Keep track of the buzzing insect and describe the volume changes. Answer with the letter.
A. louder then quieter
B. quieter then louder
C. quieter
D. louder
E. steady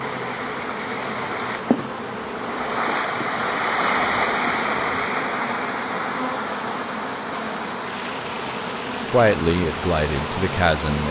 E.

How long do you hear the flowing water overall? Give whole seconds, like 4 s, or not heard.
11 s.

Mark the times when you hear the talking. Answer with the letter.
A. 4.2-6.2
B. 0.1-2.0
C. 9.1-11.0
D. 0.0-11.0
C.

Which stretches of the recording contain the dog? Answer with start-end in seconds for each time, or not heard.
not heard.